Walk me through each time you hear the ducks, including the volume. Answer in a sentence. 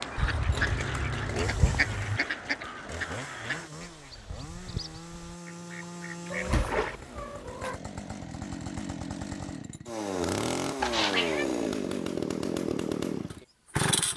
The ducks can be heard from 0.0 to 7.0 s, getting quieter.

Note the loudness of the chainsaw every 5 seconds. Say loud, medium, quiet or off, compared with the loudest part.
medium, medium, loud.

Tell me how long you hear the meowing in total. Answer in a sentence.
You can hear the meowing for 4 seconds altogether.